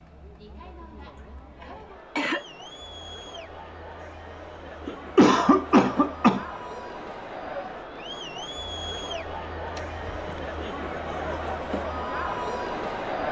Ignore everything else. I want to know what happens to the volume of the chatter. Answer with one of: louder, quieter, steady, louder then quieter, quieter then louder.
louder.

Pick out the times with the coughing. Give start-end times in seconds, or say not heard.
0.9-2.5, 4.8-6.5, 9.8-10.4.